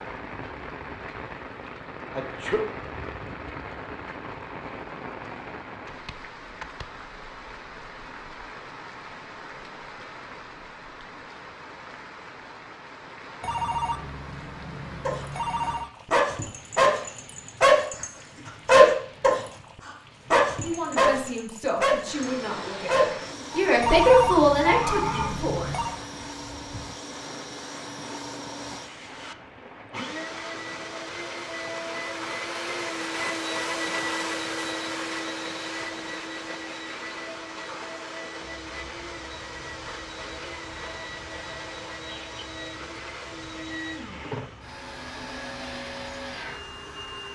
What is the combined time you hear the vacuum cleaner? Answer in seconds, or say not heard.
25 s.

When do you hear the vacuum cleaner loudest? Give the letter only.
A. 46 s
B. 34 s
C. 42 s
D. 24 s
B.